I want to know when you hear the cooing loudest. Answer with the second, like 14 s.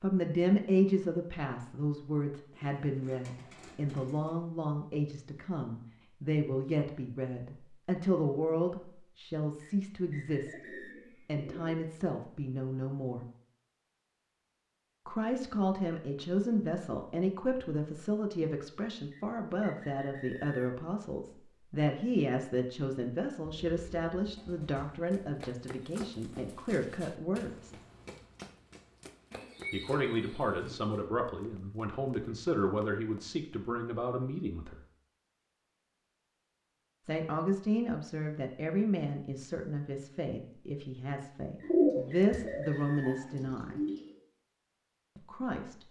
42 s.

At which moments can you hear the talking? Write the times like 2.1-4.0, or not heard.
0.0-10.6, 11.2-13.2, 15.1-27.8, 29.7-34.8, 37.0-43.8, 45.1-45.8.